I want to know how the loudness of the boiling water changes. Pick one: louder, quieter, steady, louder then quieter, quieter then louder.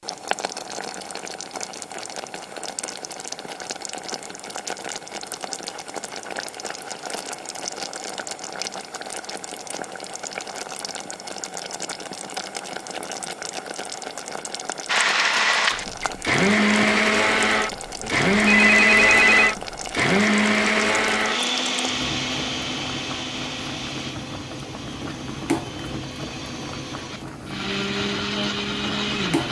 steady.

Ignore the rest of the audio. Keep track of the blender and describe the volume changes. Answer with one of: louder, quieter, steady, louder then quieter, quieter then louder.
quieter then louder.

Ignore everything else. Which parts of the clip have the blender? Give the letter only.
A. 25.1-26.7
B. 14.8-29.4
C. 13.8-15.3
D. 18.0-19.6
B.